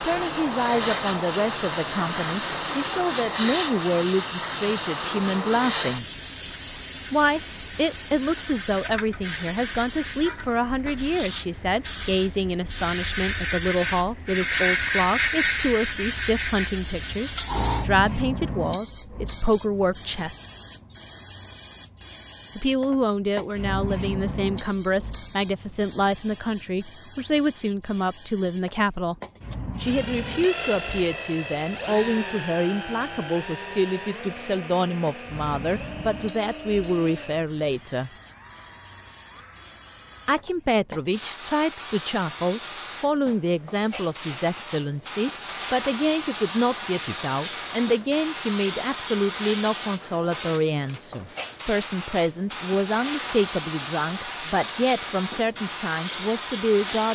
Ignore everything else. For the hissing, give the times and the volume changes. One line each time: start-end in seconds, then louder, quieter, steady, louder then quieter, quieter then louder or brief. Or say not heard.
0.0-57.1 quieter then louder.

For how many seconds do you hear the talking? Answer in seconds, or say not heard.
51 s.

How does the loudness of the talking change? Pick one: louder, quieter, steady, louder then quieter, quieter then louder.
steady.